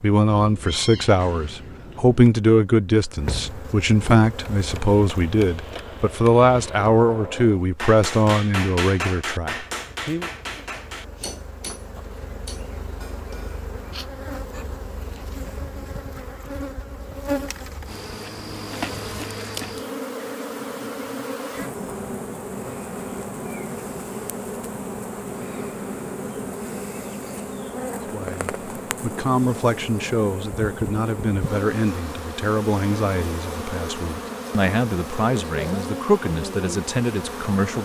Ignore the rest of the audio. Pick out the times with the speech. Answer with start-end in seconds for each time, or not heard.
0.0-10.3, 28.1-37.8.